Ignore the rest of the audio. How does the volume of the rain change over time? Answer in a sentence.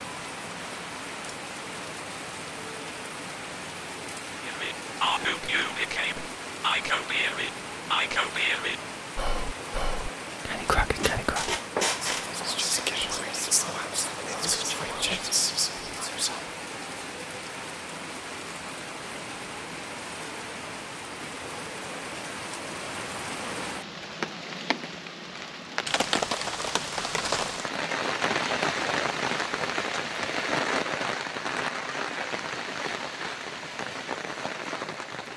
The loudness of the rain goes up.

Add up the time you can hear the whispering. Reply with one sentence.
You can hear the whispering for 12 seconds altogether.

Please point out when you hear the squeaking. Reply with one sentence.
You can hear the squeaking from 10.9 to 12.3 s.